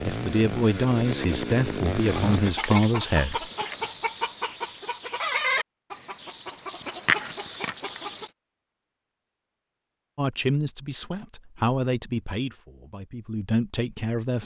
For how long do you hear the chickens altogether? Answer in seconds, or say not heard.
6 s.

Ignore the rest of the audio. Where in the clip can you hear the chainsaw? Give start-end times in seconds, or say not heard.
0.0-2.5.